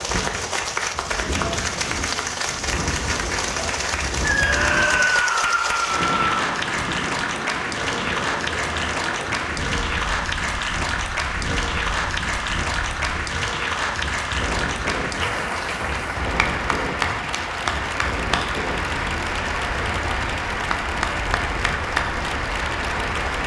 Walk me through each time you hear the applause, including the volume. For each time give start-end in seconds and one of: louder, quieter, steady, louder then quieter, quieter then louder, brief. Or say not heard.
0.0-23.4 steady.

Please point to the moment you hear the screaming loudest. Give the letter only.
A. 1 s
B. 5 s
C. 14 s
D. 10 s
B.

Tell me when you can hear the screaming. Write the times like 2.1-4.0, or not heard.
4.2-6.3.